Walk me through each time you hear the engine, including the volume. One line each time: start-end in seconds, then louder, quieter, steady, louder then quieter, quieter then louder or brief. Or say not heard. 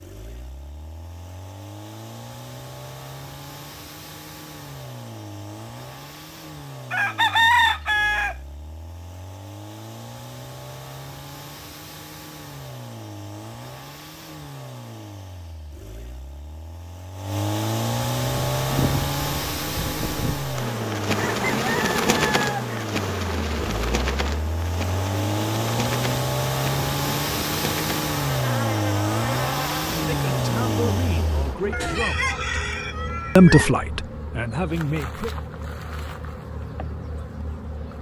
0.0-32.0 louder.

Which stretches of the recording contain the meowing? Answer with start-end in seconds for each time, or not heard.
not heard.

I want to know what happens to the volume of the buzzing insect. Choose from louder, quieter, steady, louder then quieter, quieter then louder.
quieter.